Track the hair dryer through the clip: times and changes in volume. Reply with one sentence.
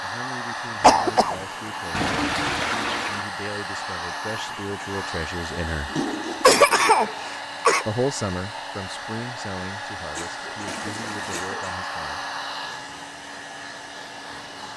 You can hear the hair dryer from 0.0 to 14.7 s, at a steady volume.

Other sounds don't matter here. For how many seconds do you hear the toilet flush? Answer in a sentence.
The toilet flush can be heard for 3 seconds in total.